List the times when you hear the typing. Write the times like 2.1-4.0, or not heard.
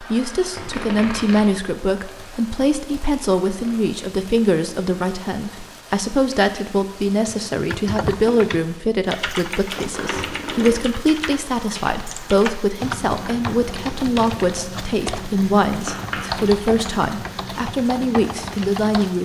7.2-19.2.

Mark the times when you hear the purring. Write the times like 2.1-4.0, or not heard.
not heard.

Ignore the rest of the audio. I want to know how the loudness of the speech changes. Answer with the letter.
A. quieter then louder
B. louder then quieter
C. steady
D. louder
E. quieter
C.